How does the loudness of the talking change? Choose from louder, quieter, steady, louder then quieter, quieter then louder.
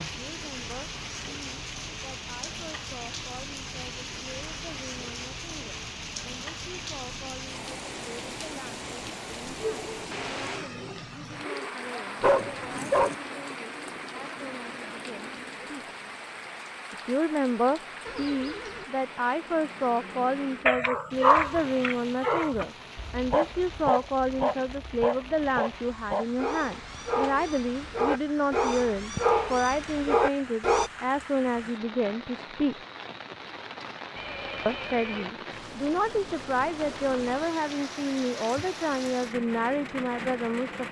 louder.